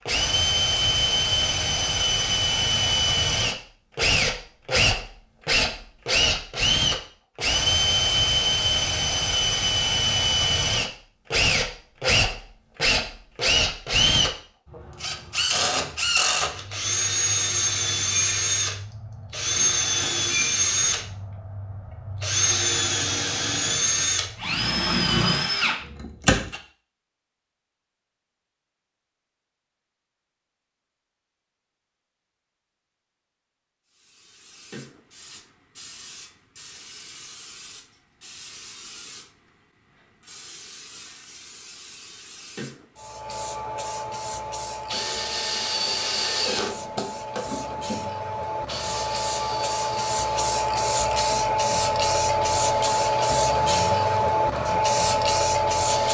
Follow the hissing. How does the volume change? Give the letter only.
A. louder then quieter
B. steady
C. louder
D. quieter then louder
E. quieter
C.